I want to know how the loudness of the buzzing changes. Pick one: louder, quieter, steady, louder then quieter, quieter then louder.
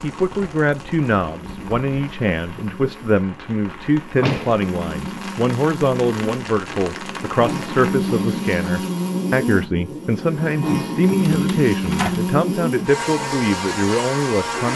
louder.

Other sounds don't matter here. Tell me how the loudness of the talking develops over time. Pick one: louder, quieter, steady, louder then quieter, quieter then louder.
steady.